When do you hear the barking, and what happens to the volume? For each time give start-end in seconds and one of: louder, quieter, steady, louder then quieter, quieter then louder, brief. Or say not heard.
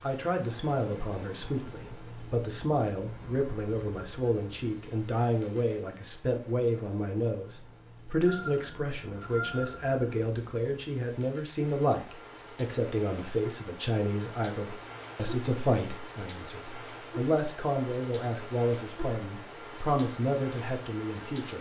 not heard.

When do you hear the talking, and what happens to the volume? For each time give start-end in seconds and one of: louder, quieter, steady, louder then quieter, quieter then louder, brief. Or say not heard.
0.0-21.5 steady.